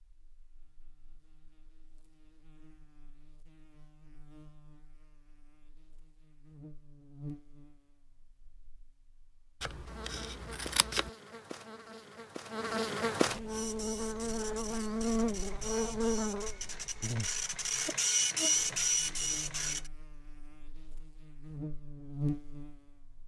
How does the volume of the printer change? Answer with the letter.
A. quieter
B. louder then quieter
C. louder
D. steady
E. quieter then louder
C.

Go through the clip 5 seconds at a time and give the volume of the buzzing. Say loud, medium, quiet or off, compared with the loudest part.
quiet, quiet, loud, loud, medium.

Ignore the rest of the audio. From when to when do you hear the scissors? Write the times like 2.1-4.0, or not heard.
9.6-11.1.